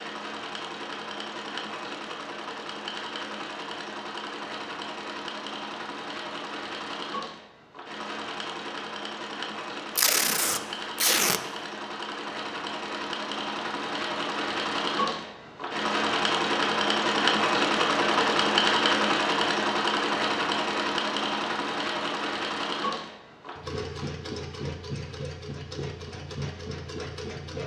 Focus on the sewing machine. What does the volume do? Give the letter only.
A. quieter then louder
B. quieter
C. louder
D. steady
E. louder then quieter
E.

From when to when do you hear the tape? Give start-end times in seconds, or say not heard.
9.9-11.4.